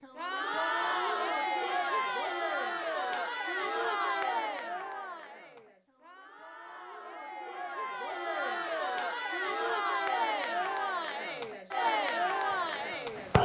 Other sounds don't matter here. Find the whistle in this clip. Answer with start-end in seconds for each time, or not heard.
not heard.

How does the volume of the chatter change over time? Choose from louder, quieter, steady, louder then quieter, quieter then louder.
quieter then louder.